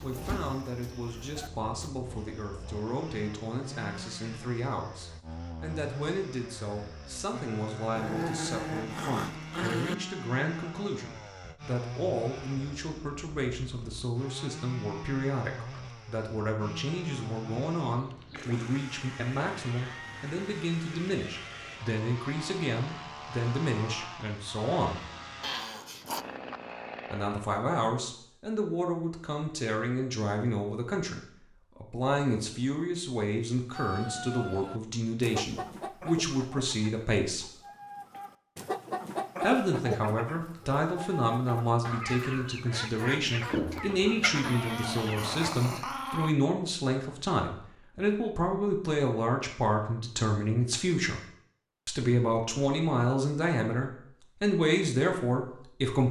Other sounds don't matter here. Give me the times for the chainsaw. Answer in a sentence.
You can hear the chainsaw from 0.0 to 27.6 s.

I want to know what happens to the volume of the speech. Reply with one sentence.
The loudness of the speech goes up.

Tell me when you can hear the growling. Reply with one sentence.
You can hear the growling from 8.0 to 9.9 s, from 25.4 to 26.2 s and from 44.4 to 46.4 s.